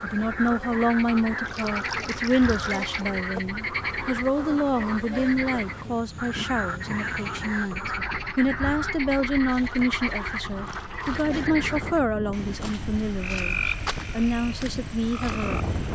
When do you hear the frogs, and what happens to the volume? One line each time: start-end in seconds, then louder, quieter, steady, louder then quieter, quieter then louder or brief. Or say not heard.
0.0-15.9 steady.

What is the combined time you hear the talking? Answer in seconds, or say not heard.
16 s.